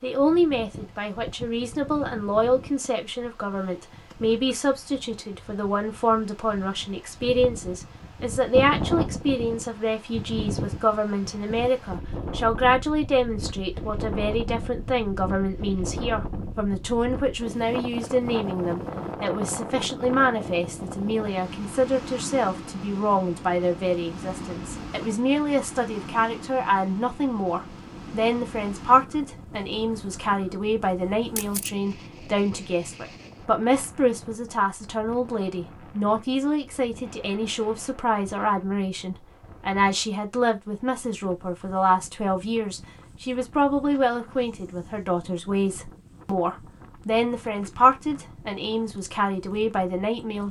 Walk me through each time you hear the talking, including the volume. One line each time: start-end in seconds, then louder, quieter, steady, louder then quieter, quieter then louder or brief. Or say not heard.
0.0-50.4 steady.